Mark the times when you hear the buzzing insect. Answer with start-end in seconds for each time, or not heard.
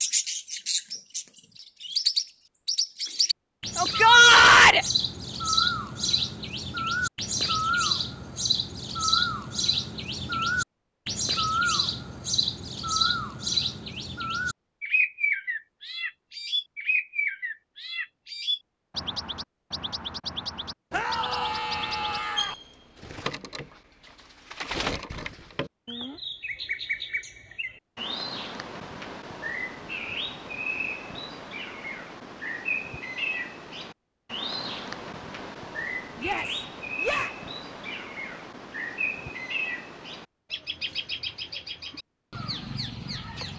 not heard.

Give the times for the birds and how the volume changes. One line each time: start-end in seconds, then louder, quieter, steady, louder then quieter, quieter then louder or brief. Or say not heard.
0.0-43.5 quieter.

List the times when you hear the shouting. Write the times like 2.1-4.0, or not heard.
3.8-4.8, 20.9-22.6, 36.1-37.4.